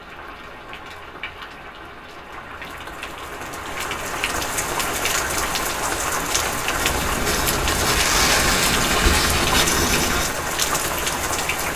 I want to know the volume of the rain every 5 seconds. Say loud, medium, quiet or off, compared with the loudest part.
medium, loud, loud.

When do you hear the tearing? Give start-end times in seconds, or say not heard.
7.7-9.7.